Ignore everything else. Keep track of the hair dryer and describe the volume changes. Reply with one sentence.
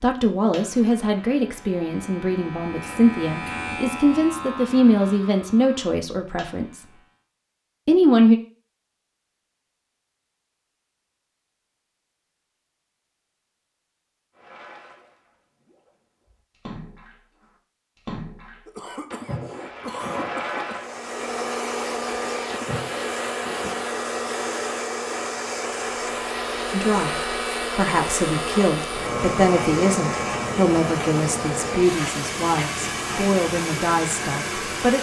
The loudness of the hair dryer stays about the same.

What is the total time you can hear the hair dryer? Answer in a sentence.
The hair dryer can be heard for 14 seconds in total.